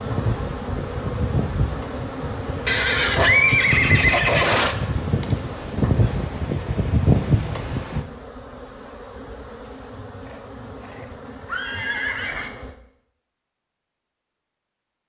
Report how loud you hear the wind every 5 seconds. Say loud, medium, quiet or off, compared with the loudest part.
medium, loud, off.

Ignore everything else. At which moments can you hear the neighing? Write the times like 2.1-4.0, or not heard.
2.6-4.8, 10.2-12.5.